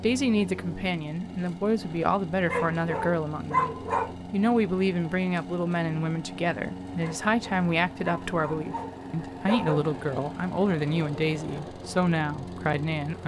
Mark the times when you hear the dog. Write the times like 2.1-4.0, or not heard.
2.5-4.2, 7.0-9.8.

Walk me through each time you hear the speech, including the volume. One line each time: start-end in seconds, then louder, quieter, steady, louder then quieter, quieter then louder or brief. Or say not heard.
0.0-13.2 steady.